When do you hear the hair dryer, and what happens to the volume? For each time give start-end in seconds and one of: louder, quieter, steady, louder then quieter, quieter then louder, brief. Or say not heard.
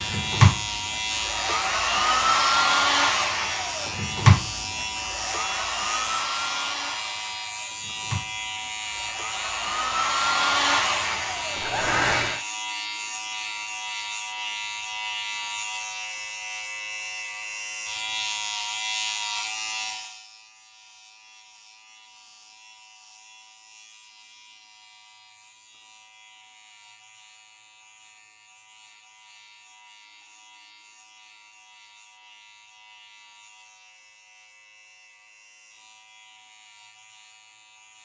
0.0-12.4 quieter then louder.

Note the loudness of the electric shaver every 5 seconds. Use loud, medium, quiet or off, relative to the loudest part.
loud, loud, loud, loud, quiet, quiet, quiet, quiet.